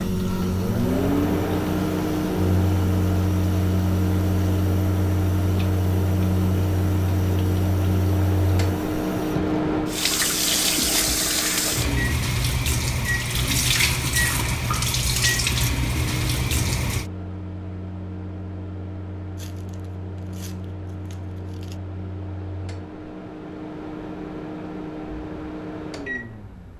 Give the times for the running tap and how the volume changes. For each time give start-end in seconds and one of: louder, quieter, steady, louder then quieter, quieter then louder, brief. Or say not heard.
0.0-17.1 louder.